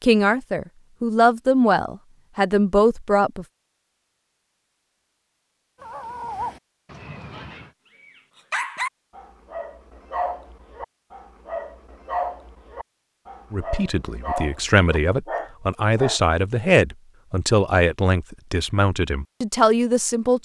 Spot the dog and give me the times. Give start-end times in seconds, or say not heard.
5.8-16.2.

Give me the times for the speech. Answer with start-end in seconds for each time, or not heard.
0.0-3.5, 13.5-20.4.